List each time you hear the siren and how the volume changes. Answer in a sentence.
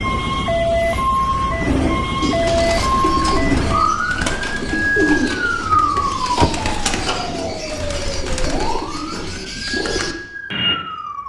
The siren can be heard from 0.0 to 11.2 s, getting quieter.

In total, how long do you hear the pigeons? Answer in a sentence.
You can hear the pigeons for 9 seconds altogether.